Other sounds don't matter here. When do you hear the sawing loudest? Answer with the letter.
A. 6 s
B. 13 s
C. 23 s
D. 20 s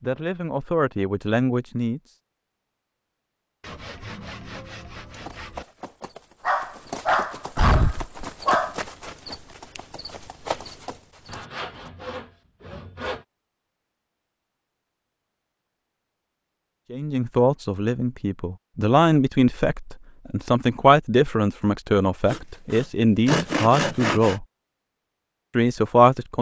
C.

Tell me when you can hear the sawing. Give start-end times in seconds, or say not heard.
3.6-5.7, 11.2-13.2, 22.2-24.4.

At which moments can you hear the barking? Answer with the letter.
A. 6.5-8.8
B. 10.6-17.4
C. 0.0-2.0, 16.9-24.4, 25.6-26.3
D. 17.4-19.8
A.